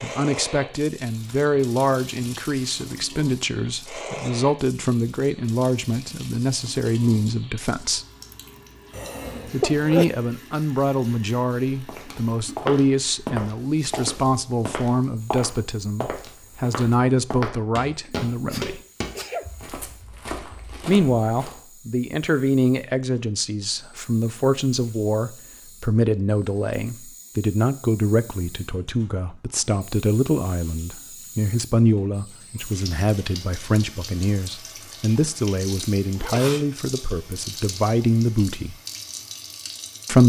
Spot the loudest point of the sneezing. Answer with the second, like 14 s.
10 s.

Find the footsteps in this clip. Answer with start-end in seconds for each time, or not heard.
11.8-21.6.